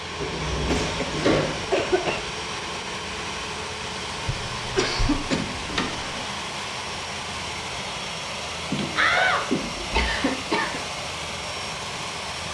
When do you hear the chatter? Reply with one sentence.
The chatter can't be heard in this clip.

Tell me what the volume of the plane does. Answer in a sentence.
The loudness of the plane stays about the same.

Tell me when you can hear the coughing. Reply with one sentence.
You can hear the coughing from 0.6 to 2.3 s, from 4.2 to 5.4 s and from 8.7 to 10.8 s.